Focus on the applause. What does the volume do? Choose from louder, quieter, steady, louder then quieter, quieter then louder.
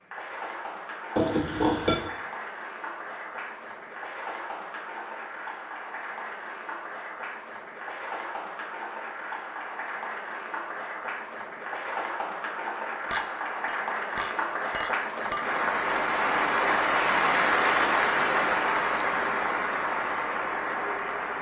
louder.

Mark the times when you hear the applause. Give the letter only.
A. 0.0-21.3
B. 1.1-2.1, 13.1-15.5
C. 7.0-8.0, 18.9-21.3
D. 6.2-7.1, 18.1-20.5
A.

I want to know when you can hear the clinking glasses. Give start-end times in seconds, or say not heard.
1.1-2.1, 13.1-15.5.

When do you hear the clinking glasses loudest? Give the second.
2 s.